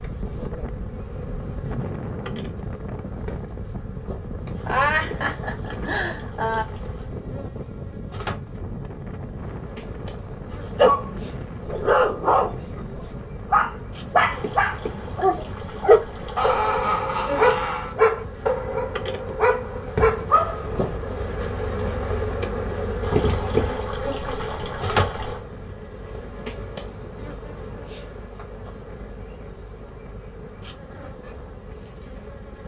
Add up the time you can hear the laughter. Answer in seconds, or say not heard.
4 s.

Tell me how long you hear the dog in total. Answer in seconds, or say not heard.
10 s.